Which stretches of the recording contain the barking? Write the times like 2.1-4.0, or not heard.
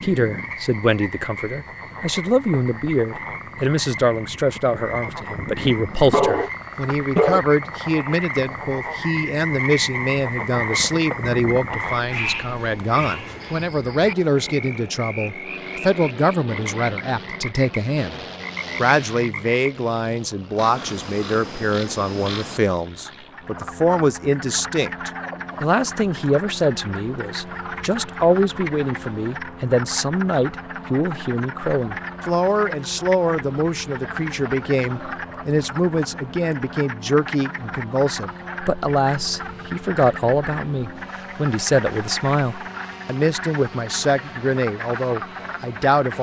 6.1-7.5.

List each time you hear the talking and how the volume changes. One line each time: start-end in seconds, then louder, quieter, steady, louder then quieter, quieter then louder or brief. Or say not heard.
0.0-46.1 steady.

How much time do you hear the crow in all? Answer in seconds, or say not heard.
not heard.